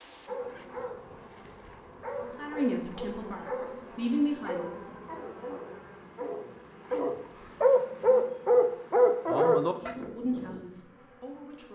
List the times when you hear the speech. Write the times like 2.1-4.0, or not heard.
2.4-4.9, 9.7-11.7.